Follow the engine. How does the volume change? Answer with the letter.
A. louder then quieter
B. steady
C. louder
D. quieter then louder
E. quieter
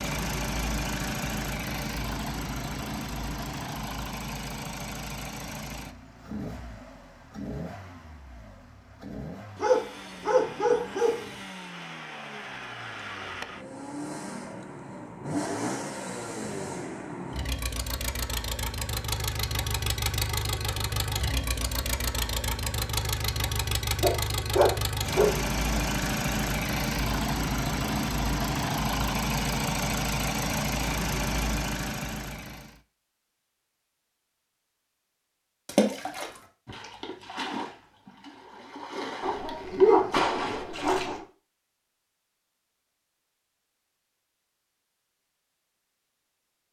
D.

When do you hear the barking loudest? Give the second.
40 s.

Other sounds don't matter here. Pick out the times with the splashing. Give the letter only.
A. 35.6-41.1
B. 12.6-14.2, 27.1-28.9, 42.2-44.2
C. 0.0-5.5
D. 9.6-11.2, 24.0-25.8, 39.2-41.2
A.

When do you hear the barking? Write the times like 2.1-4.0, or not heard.
9.6-11.2, 24.0-25.8, 39.2-41.2.